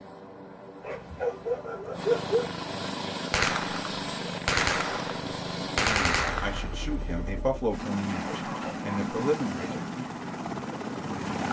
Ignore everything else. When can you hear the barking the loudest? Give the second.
2 s.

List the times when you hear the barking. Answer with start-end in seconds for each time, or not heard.
0.8-2.5, 8.1-9.9.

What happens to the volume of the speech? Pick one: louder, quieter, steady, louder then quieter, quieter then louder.
louder.